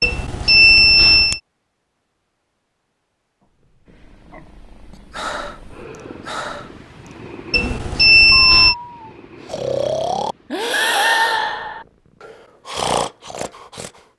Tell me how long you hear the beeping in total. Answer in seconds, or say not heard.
3 s.